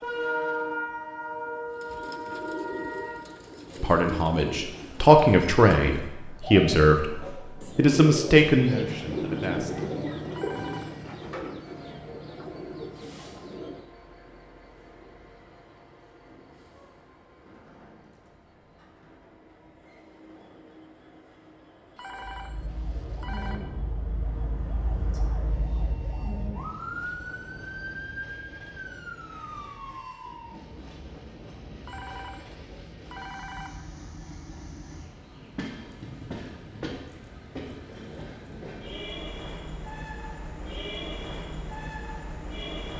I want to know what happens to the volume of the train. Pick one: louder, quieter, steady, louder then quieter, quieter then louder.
quieter then louder.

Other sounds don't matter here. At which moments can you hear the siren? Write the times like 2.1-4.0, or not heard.
22.1-30.6.